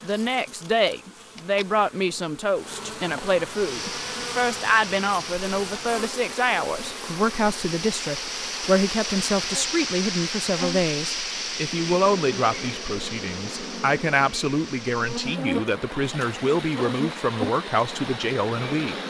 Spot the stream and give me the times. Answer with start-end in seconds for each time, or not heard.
3.5-19.0.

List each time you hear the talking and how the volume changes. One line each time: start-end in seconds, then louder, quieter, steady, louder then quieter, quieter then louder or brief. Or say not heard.
0.0-18.9 steady.